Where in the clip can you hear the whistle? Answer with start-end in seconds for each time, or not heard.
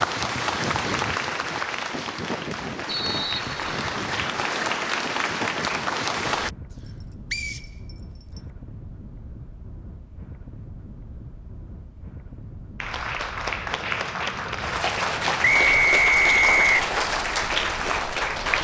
2.9-3.8, 7.3-8.4, 15.4-16.9.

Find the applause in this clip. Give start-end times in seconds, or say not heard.
0.0-6.5, 12.8-18.5.